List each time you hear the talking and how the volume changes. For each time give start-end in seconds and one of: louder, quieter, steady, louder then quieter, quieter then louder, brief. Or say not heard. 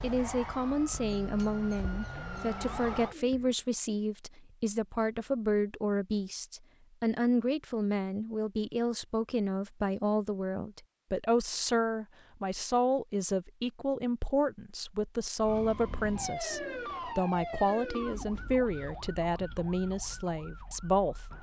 0.0-21.2 steady.